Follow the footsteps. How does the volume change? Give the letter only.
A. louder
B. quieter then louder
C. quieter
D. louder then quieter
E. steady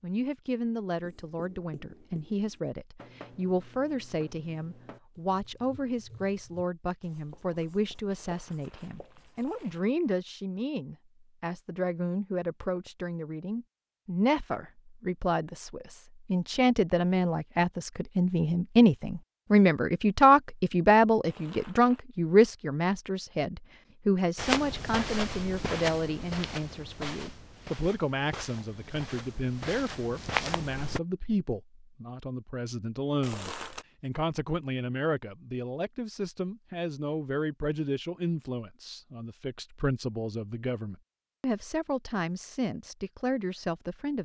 B.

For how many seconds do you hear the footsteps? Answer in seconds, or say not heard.
7 s.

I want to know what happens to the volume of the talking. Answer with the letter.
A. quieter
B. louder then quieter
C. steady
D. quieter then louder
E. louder
B.